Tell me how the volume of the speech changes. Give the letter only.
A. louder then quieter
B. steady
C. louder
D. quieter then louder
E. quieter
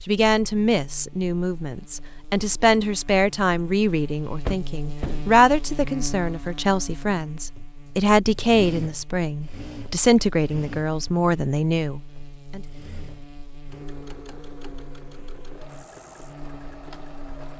B.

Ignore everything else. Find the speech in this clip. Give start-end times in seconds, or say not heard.
0.1-12.6.